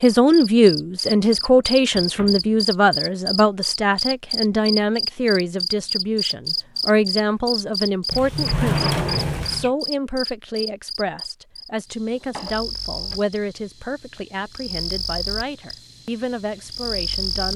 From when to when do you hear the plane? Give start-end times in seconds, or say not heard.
not heard.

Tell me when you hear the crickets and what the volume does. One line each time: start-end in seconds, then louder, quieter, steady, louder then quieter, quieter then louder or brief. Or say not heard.
0.0-17.5 quieter.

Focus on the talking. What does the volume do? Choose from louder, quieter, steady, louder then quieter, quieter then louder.
quieter.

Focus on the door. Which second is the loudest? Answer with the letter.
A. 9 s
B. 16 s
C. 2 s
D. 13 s
A.